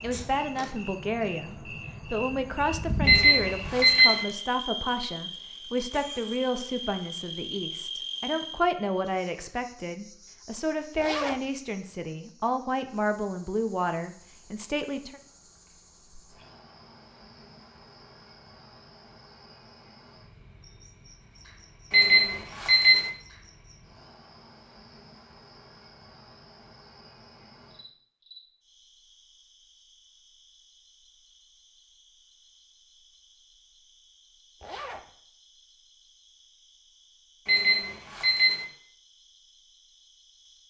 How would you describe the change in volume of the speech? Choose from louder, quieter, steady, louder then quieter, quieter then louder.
steady.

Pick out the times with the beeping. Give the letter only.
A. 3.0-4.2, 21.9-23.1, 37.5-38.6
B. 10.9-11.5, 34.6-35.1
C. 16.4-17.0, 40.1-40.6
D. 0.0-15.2
A.